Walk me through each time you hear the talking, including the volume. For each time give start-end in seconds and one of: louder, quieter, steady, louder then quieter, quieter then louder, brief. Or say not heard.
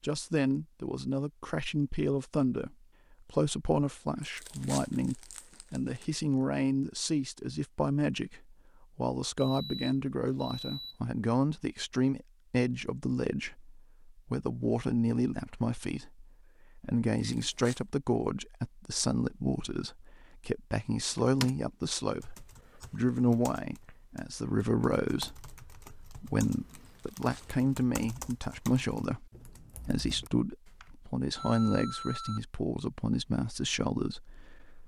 0.0-34.8 steady.